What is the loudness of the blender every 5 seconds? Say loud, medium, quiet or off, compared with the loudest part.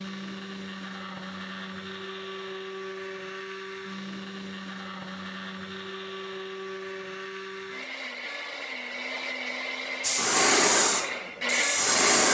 medium, medium, loud.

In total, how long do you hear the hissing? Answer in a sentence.
The hissing can be heard for 2 seconds in total.